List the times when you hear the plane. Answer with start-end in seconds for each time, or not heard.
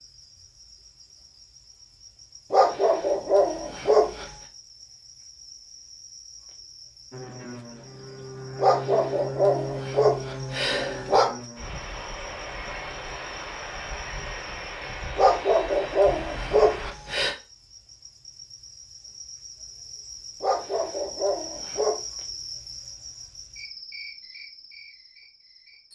7.1-16.9.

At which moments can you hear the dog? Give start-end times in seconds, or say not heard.
2.5-4.2, 8.6-11.3, 15.2-17.4, 20.4-21.9.